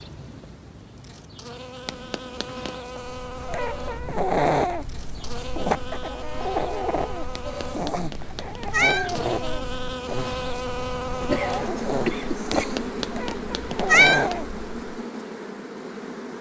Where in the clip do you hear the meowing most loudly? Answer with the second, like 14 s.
14 s.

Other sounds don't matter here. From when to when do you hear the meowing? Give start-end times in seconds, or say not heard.
1.9-2.8, 7.3-9.2, 12.5-14.3.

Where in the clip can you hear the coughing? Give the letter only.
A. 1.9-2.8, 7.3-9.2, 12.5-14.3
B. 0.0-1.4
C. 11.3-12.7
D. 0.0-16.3
C.